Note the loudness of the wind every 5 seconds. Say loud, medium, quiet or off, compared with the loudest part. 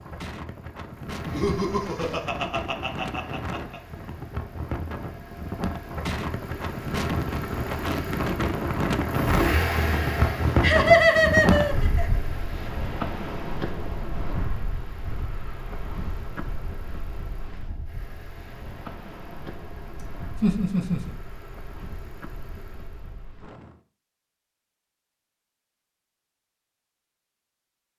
medium, loud, loud, quiet, quiet, off.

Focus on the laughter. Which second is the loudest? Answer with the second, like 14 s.
11 s.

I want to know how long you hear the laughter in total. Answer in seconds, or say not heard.
5 s.